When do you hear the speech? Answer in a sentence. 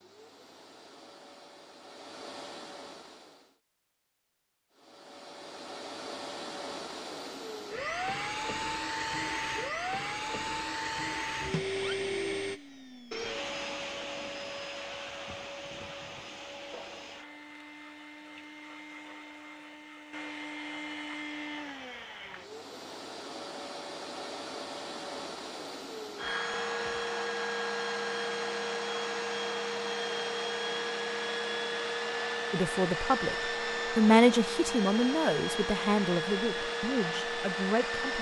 The speech can be heard from 32.5 to 33.4 s and from 34.0 to 38.1 s.